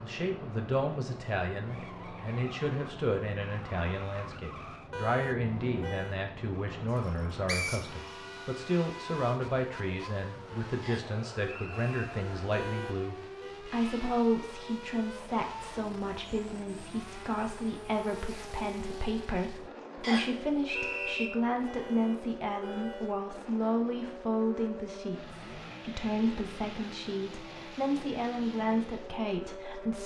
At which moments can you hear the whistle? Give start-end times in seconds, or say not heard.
7.0-8.1, 10.8-12.1, 20.0-21.3.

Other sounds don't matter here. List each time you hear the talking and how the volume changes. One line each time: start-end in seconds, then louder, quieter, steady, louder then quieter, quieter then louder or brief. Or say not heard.
0.0-30.0 steady.